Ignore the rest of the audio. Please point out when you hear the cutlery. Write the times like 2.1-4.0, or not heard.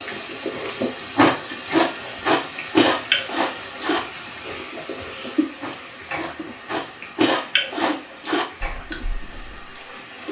not heard.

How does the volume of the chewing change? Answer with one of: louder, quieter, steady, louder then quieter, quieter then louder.
quieter then louder.